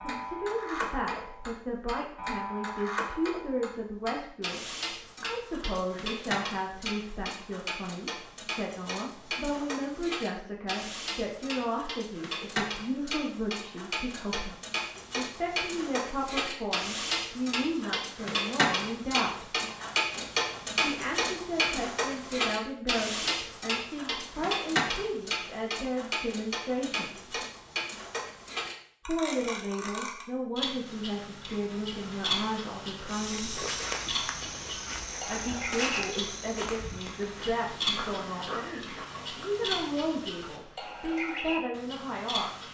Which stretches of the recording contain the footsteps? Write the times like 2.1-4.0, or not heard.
33.0-39.0.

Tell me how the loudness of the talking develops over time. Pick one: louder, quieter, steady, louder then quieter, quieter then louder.
steady.